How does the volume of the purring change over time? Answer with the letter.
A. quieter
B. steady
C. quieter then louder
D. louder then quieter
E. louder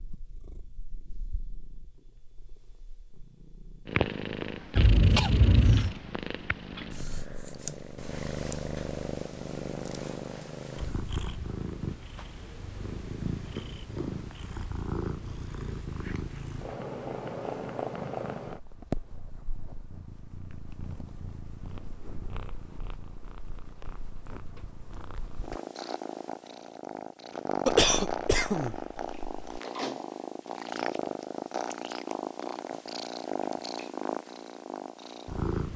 B.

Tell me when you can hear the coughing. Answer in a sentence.
You can hear the coughing from 4.8 to 6.0 s and from 27.6 to 29.6 s.